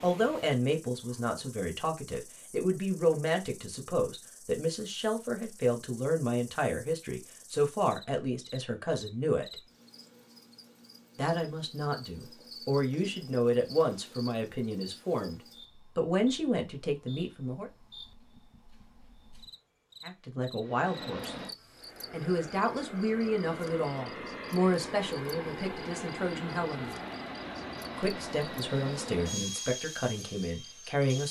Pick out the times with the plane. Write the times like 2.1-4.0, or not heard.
20.6-31.2.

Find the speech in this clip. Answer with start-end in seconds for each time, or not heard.
0.0-9.6, 11.2-17.7, 20.0-21.4, 22.1-26.9, 27.9-31.2.